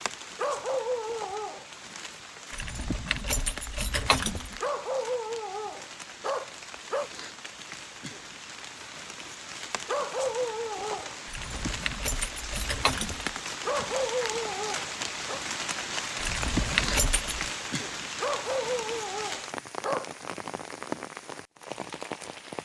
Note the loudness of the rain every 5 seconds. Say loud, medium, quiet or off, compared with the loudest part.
medium, medium, loud, loud, loud.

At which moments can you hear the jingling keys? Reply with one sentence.
The jingling keys can be heard from 2.5 to 4.6 s, from 11.2 to 13.3 s and from 16.1 to 17.5 s.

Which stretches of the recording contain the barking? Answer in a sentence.
You can hear the barking from 0.3 to 1.6 s, from 4.6 to 7.1 s, from 9.8 to 11.6 s, from 13.7 to 15.4 s and from 18.2 to 20.1 s.